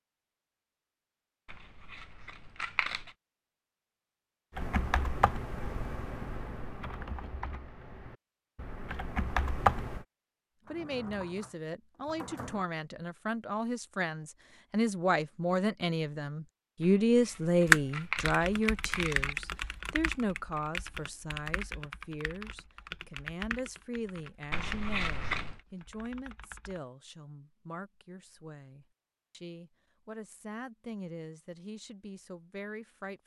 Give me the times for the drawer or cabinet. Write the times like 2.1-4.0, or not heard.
10.7-12.7.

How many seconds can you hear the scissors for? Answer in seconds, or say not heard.
5 s.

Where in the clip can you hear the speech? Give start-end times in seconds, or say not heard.
10.7-33.2.